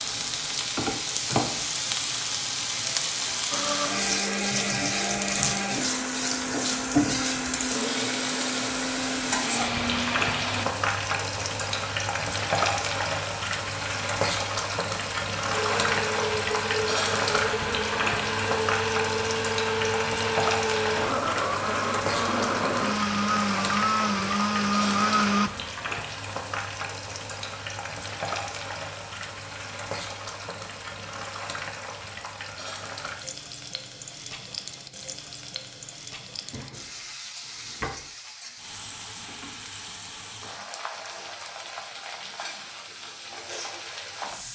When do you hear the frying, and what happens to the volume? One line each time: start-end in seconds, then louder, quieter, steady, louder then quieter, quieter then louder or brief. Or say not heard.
0.0-44.5 quieter.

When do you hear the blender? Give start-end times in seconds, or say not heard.
3.5-10.7, 15.5-25.5.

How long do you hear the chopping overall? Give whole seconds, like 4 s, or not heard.
not heard.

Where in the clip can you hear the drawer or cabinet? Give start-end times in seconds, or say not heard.
36.4-38.1.